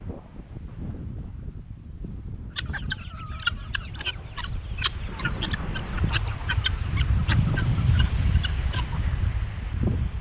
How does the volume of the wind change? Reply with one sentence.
The loudness of the wind goes up.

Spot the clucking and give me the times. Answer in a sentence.
You can hear the clucking from 2.5 to 9.0 s.